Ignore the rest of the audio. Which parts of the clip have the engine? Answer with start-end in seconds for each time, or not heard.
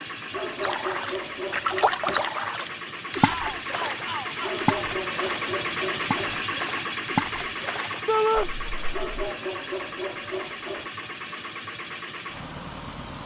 0.0-13.2.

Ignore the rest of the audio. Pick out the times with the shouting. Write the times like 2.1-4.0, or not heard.
3.1-4.7, 8.1-8.5.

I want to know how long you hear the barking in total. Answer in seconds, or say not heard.
6 s.